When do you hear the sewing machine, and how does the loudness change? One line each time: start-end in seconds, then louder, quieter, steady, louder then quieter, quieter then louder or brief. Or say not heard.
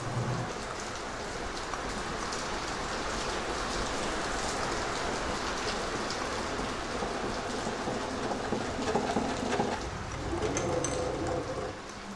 0.0-12.1 louder.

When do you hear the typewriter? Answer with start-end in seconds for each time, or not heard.
not heard.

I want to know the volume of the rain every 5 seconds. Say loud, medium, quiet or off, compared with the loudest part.
loud, loud, medium.